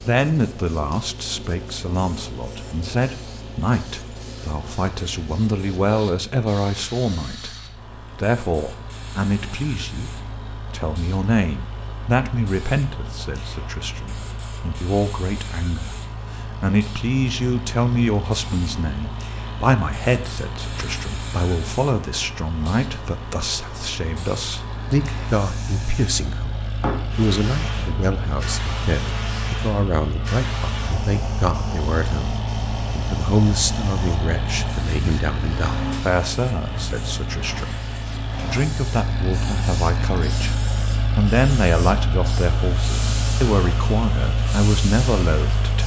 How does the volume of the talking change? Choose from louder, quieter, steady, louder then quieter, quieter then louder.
steady.